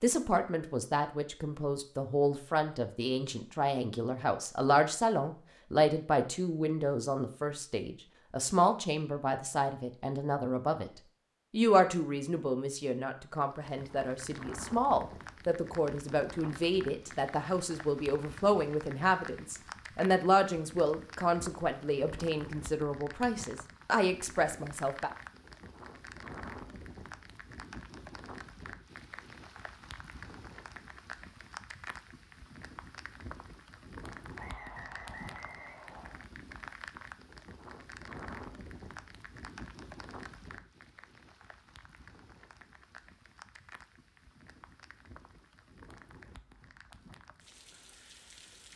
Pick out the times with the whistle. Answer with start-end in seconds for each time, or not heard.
34.4-36.2.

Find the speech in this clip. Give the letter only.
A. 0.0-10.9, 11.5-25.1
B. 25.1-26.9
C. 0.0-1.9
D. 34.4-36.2
A.